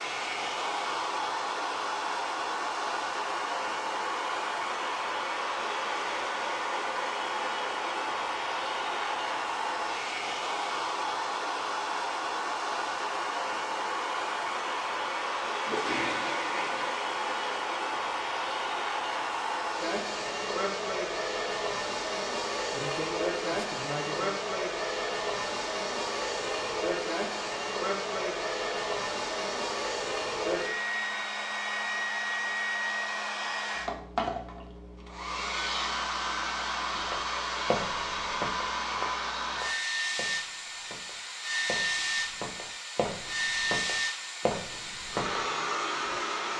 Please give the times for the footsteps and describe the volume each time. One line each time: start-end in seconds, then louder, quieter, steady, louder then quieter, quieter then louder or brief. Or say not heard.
36.9-45.5 quieter then louder.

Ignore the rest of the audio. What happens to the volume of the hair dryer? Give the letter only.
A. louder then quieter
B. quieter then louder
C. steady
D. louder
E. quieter
C.